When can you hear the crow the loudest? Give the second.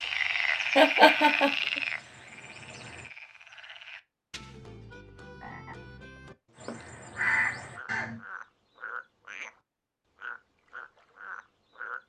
7 s.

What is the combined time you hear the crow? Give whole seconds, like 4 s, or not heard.
5 s.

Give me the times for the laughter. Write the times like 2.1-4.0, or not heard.
0.8-1.6.